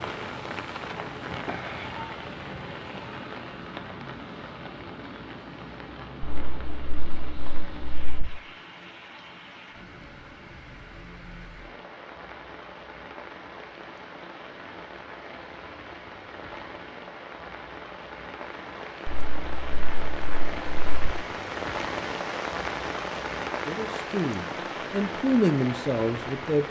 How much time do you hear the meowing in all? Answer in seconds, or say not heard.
4 s.